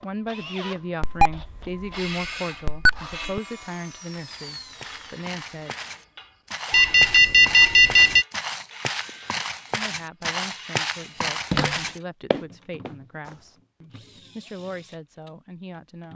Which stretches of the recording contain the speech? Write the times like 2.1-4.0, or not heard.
0.0-5.8, 9.8-16.1.